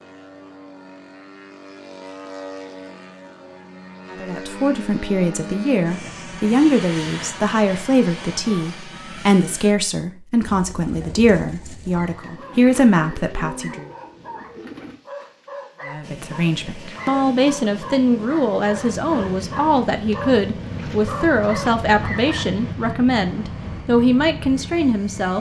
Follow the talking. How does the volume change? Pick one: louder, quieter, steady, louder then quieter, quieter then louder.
steady.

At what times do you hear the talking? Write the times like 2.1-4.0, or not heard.
4.1-13.8, 15.8-25.3.